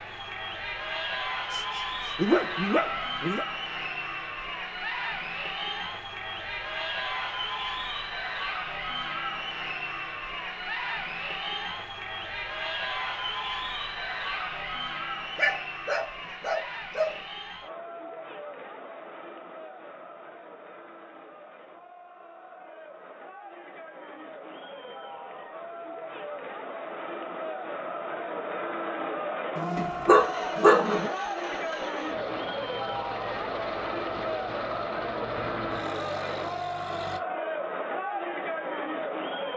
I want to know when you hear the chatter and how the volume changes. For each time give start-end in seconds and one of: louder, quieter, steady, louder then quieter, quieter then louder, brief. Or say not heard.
0.0-39.5 quieter then louder.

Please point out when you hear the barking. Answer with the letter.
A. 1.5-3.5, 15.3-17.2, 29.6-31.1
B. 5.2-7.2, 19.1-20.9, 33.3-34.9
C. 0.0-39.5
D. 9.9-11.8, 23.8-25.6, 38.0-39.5
A.